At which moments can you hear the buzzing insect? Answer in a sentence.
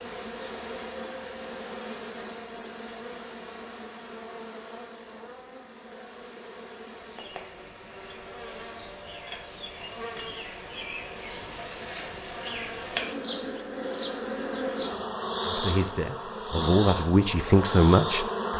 You can hear the buzzing insect from 0.0 to 18.5 s.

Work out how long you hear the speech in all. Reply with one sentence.
The speech can be heard for 3 seconds in total.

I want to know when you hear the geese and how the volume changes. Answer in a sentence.
You can't hear the geese here.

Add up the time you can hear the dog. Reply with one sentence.
The dog can't be heard in this clip.